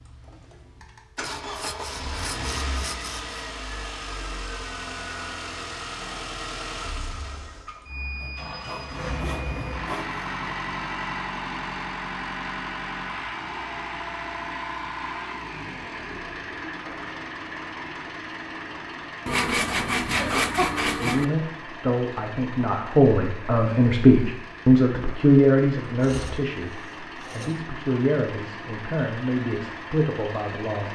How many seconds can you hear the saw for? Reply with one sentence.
The saw can be heard for 8 seconds in total.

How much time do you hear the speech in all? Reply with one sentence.
You can hear the speech for 10 seconds altogether.